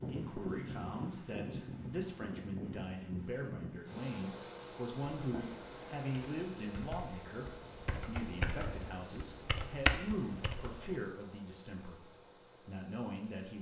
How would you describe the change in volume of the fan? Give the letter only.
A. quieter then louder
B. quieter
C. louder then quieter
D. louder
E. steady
B.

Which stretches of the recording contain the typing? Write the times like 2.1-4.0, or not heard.
5.2-10.9.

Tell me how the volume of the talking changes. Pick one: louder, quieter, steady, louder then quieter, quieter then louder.
steady.